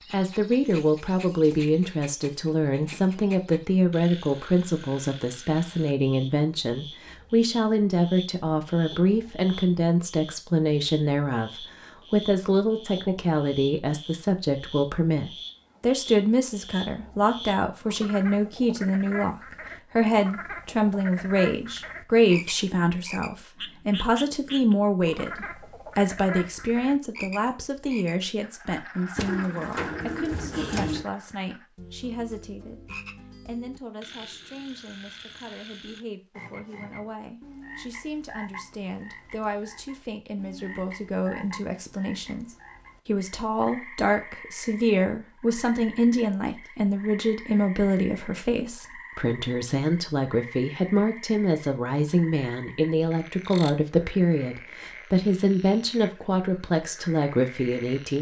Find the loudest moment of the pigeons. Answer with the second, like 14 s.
31 s.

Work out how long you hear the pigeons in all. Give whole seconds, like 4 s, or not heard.
2 s.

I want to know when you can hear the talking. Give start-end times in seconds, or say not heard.
0.1-58.1.